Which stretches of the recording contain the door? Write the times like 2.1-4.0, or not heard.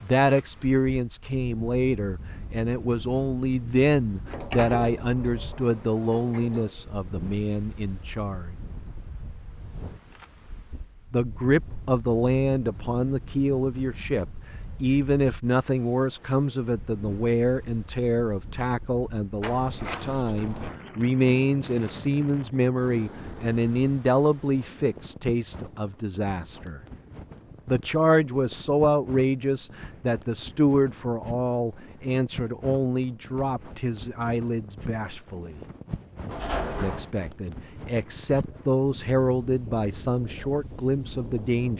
4.2-6.7, 19.4-20.8, 36.3-37.1.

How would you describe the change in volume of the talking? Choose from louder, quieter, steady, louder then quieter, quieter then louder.
steady.